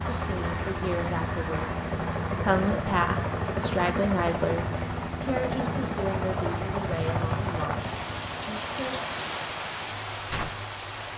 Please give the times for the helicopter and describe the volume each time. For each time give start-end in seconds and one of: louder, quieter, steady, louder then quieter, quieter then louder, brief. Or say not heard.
0.0-11.1 quieter.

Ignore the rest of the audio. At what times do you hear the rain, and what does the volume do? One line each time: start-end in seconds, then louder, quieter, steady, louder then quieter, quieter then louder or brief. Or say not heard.
0.0-11.1 louder.